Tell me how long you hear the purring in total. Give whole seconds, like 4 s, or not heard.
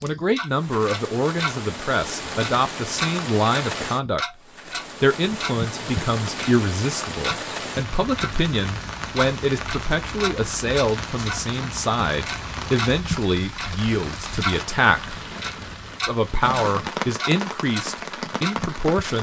not heard.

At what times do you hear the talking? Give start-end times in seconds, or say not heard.
0.0-4.2, 5.0-15.2, 16.1-19.1.